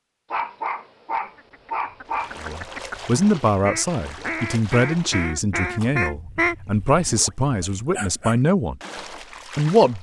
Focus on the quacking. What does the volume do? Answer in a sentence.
The volume of the quacking goes up.